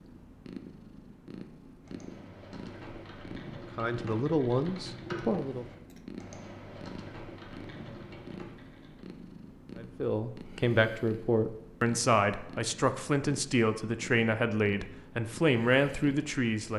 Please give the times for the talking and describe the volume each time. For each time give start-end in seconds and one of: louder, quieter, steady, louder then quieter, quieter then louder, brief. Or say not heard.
3.8-5.7 brief
9.8-16.7 steady.